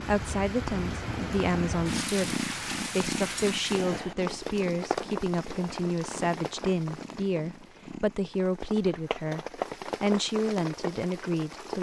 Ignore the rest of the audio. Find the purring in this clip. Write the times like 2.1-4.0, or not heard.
0.0-8.2.